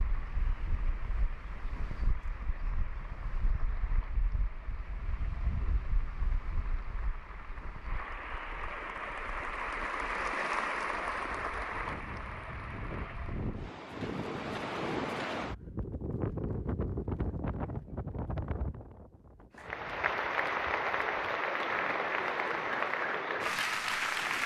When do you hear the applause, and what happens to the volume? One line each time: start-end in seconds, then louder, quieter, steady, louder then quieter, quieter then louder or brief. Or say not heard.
0.0-13.7 louder
19.6-24.4 steady.